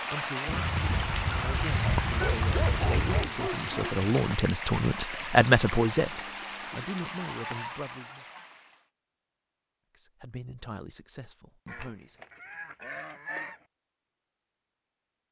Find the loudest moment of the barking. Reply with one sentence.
The loudest moment of the barking is at 3 seconds.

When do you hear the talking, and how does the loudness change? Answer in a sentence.
The talking can be heard from 0.1 to 8.2 s, getting louder then quieter; and briefly from 9.9 to 12.2 s.